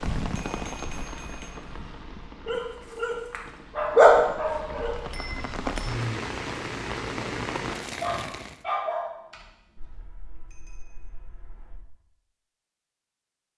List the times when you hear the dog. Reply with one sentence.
The dog can be heard from 2.5 to 5.0 s and from 8.0 to 10.0 s.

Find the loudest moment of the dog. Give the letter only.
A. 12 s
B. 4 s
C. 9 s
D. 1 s
B.